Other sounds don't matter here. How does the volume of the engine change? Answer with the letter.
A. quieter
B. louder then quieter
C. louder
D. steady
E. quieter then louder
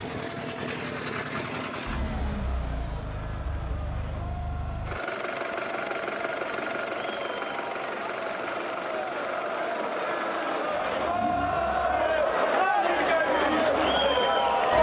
A.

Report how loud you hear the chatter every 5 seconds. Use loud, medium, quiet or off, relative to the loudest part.
quiet, medium, loud.